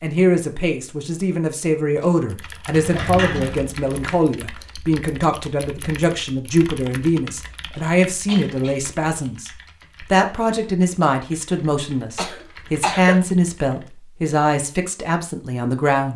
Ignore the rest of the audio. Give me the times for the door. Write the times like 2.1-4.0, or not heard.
2.7-4.2.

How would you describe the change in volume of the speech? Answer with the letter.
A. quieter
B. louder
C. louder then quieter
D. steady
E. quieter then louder
D.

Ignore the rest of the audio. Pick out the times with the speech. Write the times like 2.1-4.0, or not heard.
0.0-9.5, 10.1-16.1.